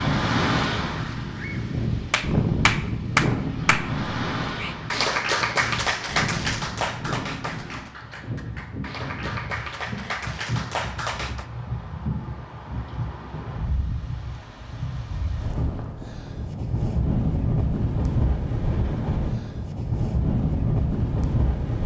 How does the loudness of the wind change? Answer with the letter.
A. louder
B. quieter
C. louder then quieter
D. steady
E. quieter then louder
E.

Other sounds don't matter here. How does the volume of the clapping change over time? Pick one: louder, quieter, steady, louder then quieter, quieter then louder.
quieter then louder.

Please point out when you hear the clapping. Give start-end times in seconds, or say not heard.
2.1-11.4.